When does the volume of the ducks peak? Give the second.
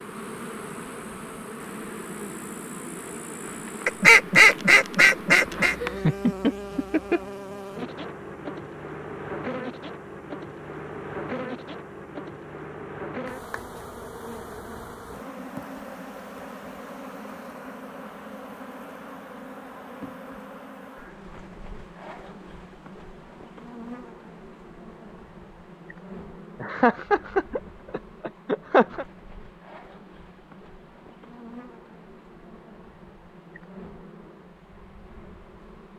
4 s.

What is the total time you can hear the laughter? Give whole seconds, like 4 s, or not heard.
4 s.